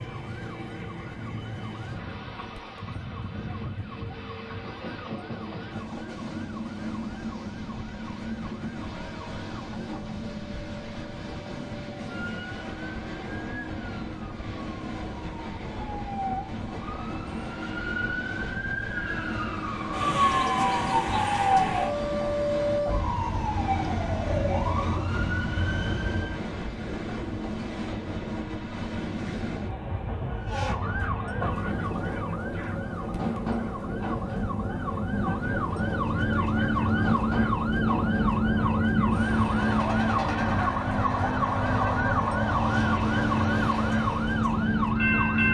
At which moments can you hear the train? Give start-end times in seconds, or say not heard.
0.0-45.4.